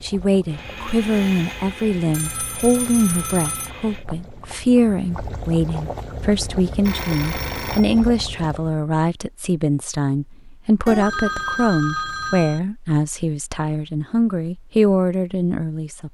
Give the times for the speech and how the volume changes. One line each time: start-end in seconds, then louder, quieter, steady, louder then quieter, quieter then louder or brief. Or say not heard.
0.0-16.0 steady.